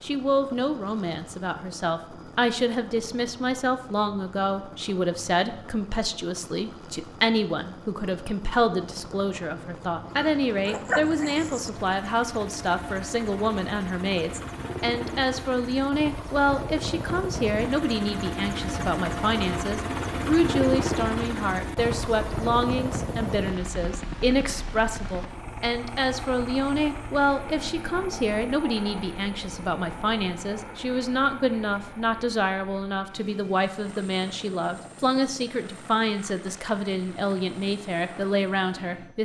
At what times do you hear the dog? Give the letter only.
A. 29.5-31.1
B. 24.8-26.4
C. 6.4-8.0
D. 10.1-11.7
D.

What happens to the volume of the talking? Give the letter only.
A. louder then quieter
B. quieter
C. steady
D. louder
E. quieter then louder
C.